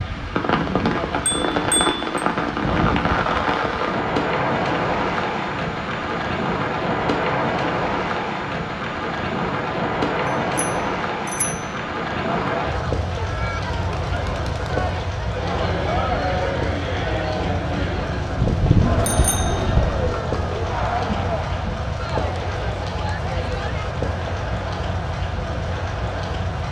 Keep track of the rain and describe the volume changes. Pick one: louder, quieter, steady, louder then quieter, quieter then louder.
quieter.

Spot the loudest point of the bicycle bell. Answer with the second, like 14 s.
19 s.